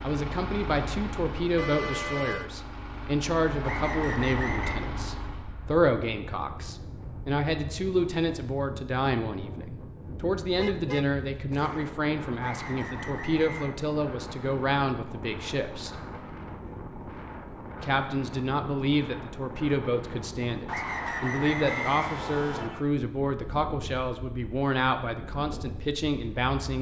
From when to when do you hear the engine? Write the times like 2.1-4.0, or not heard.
0.0-5.5.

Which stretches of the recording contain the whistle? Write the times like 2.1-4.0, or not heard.
3.6-4.8, 12.4-13.7, 20.6-22.7.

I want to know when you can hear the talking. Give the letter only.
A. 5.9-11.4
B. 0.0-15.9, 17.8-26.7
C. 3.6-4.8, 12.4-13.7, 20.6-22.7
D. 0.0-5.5
B.